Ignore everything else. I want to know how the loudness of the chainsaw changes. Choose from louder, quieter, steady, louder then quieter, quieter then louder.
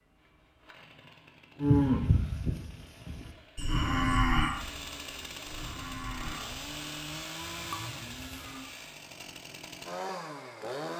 louder.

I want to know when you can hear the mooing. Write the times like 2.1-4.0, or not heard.
1.6-8.7.